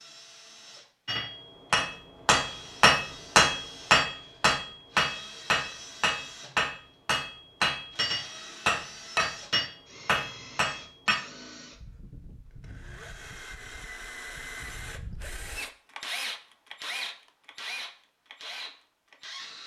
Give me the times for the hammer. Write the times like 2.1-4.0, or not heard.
1.1-11.2.